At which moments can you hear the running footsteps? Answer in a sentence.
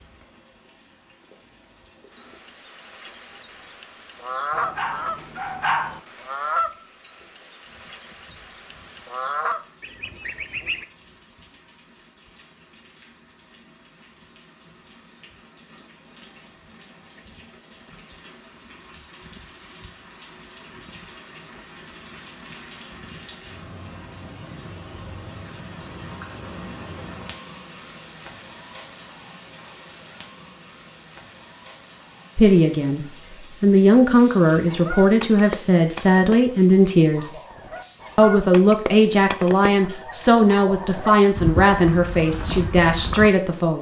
You can't hear the running footsteps here.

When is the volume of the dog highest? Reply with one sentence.
The volume of the dog peaks at 6 seconds.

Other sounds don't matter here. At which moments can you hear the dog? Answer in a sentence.
The dog can be heard from 4.5 to 6.0 s.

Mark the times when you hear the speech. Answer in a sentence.
The speech can be heard from 32.4 to 37.4 s and from 38.1 to 43.7 s.